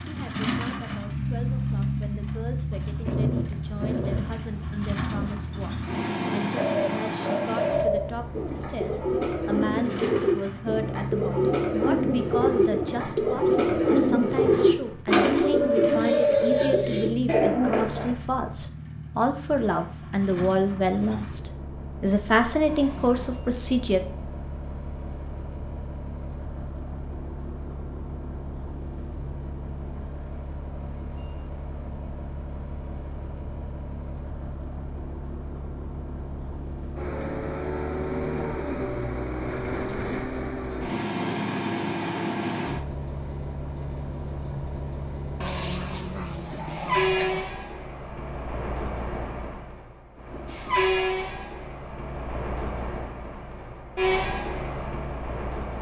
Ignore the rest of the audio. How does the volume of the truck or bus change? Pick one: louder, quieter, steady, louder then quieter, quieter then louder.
quieter then louder.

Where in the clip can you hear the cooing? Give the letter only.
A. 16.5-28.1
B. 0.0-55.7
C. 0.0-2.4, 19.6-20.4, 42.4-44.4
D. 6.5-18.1
D.